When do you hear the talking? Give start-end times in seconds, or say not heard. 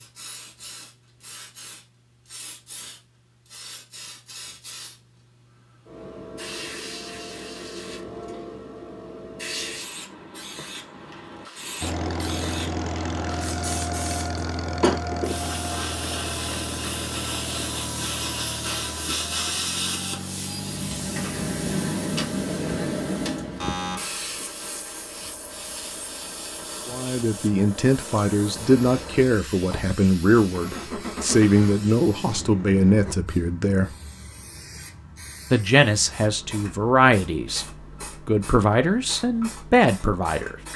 26.9-34.0, 35.5-40.5.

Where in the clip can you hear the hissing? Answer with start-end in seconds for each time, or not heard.
0.0-40.7.